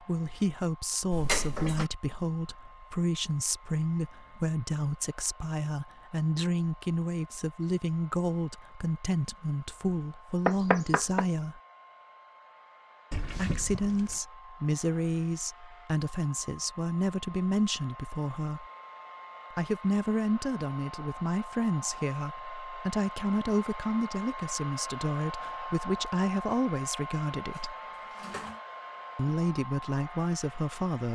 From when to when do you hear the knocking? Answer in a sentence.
The knocking can be heard from 10.4 to 11.2 s.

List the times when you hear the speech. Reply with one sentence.
You can hear the speech from 0.0 to 11.6 s, from 13.3 to 18.6 s, from 19.5 to 27.8 s and from 29.1 to 31.1 s.